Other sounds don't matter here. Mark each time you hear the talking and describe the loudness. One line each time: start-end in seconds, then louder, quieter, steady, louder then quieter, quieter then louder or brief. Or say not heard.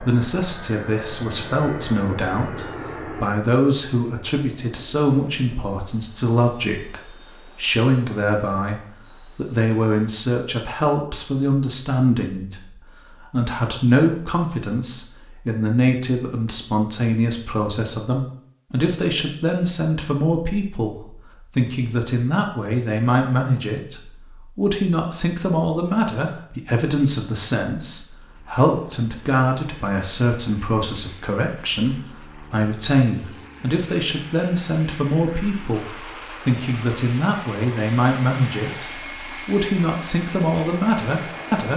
0.0-41.7 steady.